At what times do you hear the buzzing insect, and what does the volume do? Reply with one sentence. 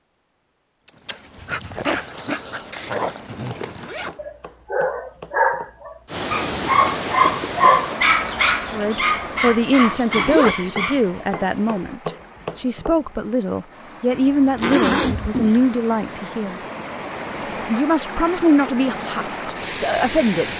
The buzzing insect can't be heard in this clip.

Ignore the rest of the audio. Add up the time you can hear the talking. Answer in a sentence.
You can hear the talking for 11 seconds altogether.